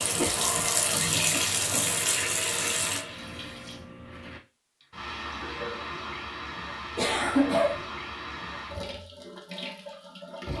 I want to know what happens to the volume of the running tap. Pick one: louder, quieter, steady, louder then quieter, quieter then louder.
quieter.